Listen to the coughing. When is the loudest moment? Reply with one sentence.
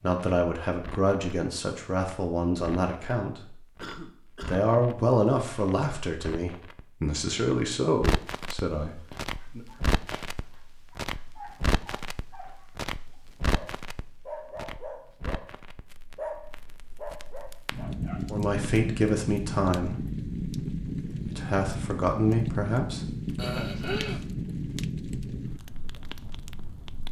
The volume of the coughing peaks at 24 seconds.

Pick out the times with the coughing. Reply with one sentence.
You can hear the coughing from 3.8 to 4.7 s and from 23.4 to 24.3 s.